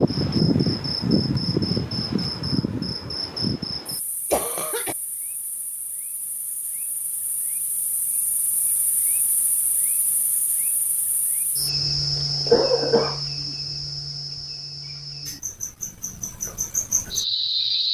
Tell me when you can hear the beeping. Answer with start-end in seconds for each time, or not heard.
not heard.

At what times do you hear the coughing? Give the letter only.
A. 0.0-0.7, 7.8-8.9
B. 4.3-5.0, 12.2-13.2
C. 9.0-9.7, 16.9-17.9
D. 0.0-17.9
B.